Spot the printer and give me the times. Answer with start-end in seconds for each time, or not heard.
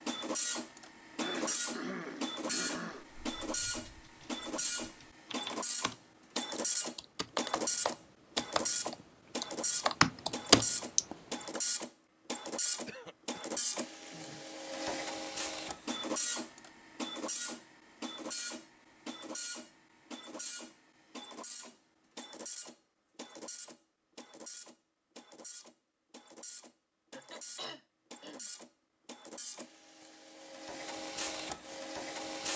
0.0-32.5.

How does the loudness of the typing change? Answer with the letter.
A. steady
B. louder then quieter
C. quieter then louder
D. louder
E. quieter
D.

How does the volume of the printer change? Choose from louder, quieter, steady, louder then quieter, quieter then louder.
quieter.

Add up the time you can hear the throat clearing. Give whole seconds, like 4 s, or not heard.
5 s.